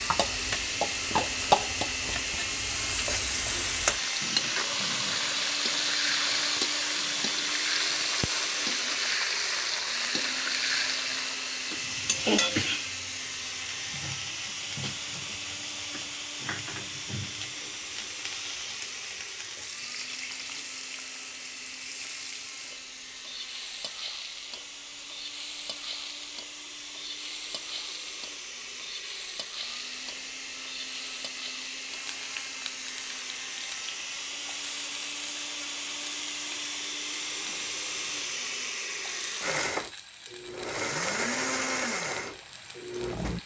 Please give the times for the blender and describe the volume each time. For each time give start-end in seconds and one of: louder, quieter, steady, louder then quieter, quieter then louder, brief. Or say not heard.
0.0-43.4 quieter then louder.